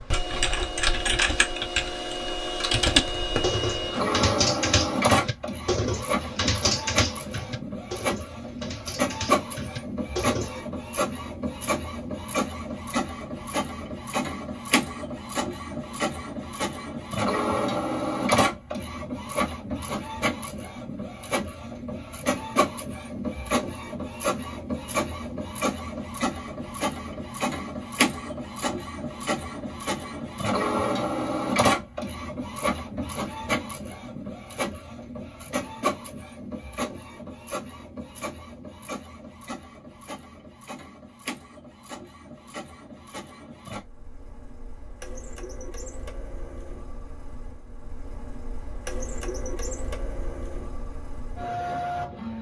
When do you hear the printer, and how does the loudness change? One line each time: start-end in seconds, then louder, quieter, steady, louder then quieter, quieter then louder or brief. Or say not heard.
0.0-52.3 quieter.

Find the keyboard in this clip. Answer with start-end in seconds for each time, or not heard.
0.3-10.6.